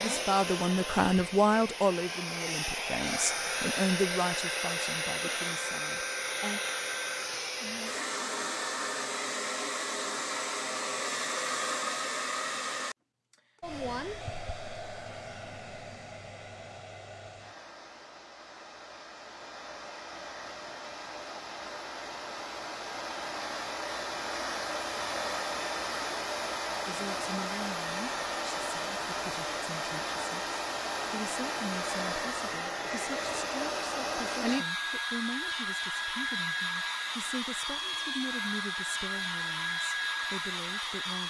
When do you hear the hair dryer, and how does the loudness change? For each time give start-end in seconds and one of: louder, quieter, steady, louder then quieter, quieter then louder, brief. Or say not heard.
0.0-41.2 quieter then louder.